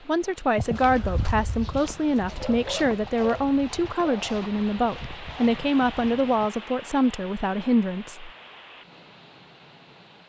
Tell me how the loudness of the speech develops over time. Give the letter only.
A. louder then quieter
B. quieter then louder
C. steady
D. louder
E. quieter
C.